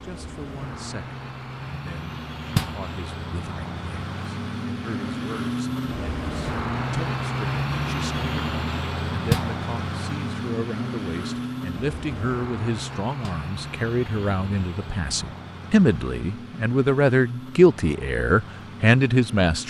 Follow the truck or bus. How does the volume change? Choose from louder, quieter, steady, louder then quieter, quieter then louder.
louder then quieter.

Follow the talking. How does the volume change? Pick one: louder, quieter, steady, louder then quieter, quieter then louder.
louder.